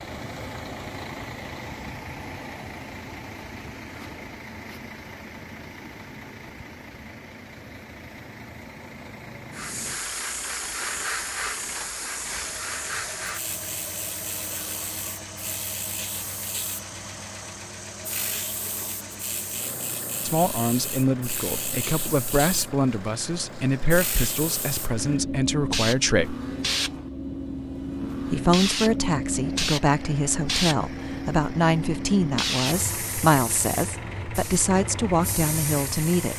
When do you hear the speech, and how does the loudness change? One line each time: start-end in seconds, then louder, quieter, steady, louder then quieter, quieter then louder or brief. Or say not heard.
20.2-26.4 steady
28.3-36.3 steady.